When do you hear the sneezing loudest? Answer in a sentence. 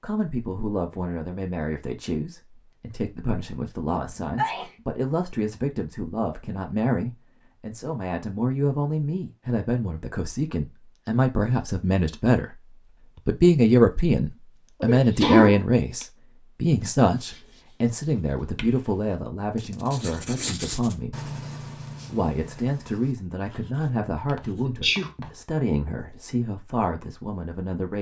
The loudest moment of the sneezing is at 15 seconds.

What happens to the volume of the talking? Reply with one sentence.
The volume of the talking goes up, then down.